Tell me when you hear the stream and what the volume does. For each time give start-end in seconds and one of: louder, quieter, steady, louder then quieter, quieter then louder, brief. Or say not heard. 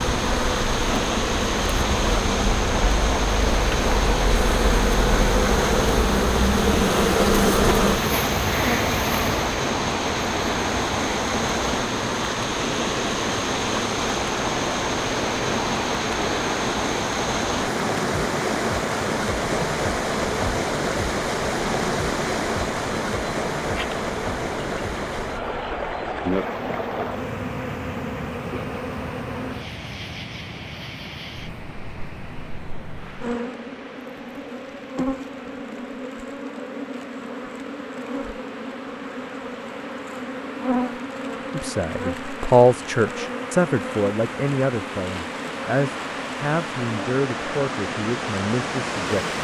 0.0-49.4 quieter then louder.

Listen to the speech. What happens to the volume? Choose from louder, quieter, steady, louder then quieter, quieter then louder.
quieter.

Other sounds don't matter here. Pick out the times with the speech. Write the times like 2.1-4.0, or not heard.
41.5-49.4.